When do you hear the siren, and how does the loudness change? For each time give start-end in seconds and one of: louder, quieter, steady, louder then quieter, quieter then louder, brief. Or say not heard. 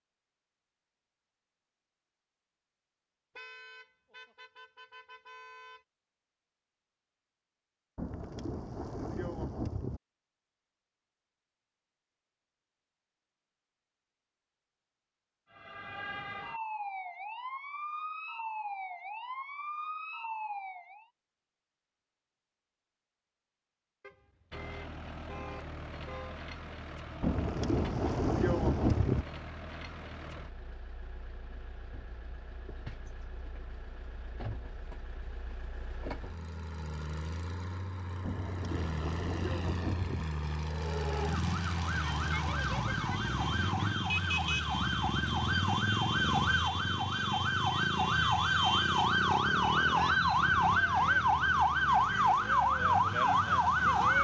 15.5-21.1 steady
40.6-54.2 louder.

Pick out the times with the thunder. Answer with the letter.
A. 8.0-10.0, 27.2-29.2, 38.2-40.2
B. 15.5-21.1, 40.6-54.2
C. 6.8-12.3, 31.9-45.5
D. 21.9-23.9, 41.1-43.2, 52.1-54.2
A.